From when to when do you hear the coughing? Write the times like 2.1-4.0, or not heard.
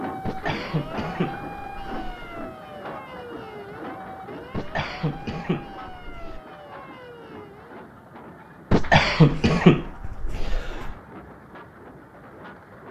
0.2-2.5, 4.5-6.4, 8.7-10.9.